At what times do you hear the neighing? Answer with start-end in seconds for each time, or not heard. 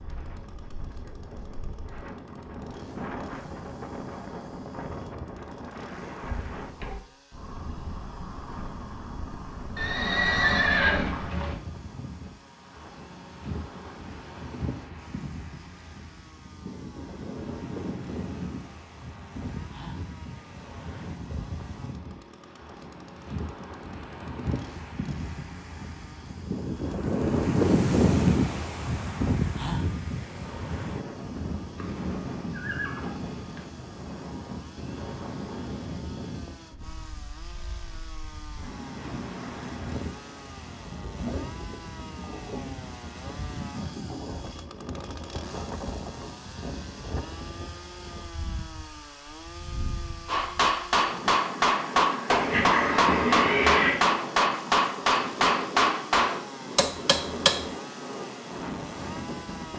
9.8-11.6, 31.8-33.6, 52.2-54.0.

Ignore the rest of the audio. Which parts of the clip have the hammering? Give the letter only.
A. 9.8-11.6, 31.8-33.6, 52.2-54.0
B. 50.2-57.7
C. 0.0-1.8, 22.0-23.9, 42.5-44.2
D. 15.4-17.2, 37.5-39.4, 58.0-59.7
B.